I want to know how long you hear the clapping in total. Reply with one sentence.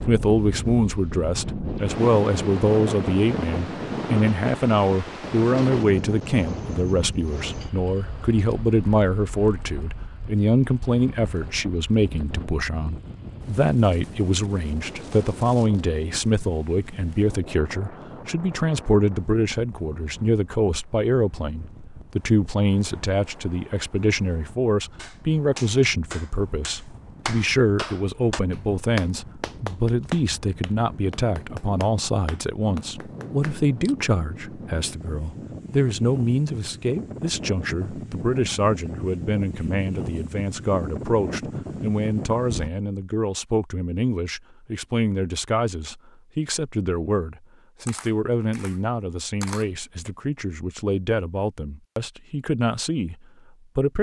The clapping can be heard for 9 seconds in total.